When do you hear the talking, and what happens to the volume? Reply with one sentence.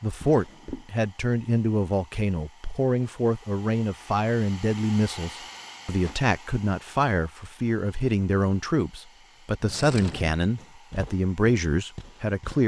The talking can be heard from 0.0 to 12.6 s, at a steady volume.